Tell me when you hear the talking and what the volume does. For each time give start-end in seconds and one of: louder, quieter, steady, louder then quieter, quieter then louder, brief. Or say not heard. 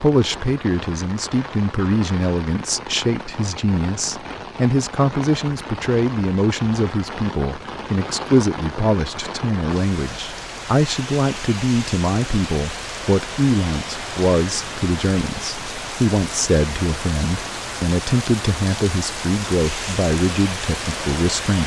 0.0-21.6 steady.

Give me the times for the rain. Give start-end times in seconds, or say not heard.
0.0-21.6.